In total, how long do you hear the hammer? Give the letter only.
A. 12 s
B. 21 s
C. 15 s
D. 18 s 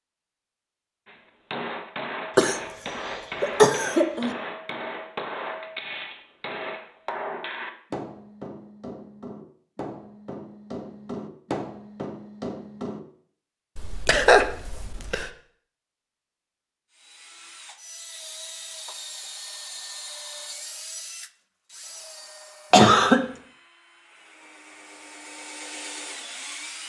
A.